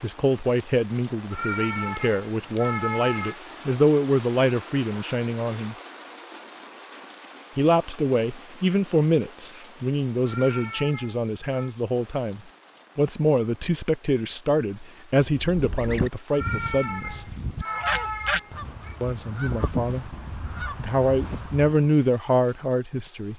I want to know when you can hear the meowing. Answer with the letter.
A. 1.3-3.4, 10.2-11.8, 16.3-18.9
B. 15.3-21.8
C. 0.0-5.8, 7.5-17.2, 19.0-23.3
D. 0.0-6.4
A.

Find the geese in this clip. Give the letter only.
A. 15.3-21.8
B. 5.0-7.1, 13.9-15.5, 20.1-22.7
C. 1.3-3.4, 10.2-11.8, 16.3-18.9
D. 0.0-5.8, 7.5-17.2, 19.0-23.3
A.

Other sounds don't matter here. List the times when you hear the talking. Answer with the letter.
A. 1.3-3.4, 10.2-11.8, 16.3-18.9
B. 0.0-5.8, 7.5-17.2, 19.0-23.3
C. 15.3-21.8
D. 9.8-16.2
B.